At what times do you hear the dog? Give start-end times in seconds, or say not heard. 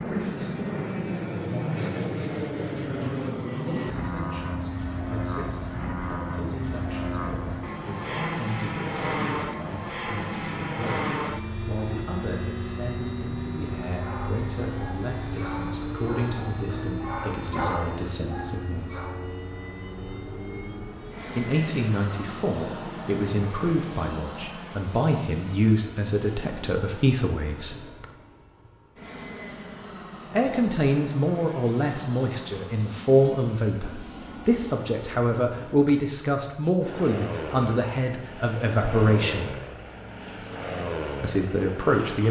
13.8-19.2.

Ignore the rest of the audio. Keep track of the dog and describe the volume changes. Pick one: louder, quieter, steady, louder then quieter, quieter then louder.
louder then quieter.